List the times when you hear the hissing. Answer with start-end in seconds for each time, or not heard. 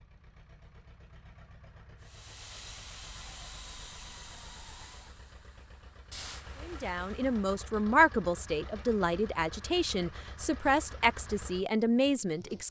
2.0-7.3.